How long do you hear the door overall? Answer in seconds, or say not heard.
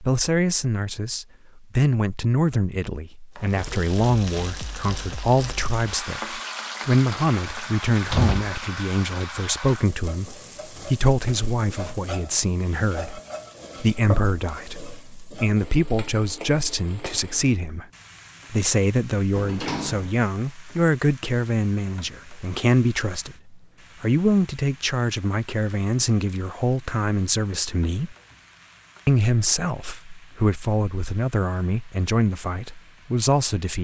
2 s.